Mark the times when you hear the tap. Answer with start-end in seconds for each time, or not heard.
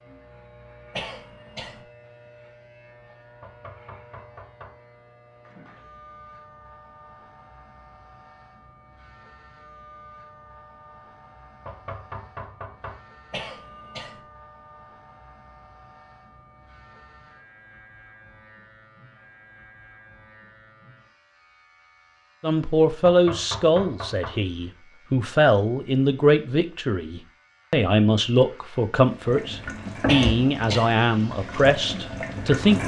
29.2-32.8.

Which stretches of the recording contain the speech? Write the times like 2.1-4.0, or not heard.
22.4-32.8.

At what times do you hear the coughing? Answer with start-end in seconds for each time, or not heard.
0.9-1.9, 13.3-14.2, 30.1-30.9.